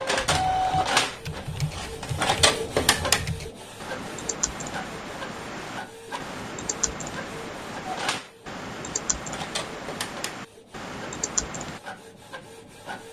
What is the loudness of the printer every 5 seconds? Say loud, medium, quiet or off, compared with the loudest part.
loud, medium, quiet.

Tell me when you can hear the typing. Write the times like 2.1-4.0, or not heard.
0.1-11.8.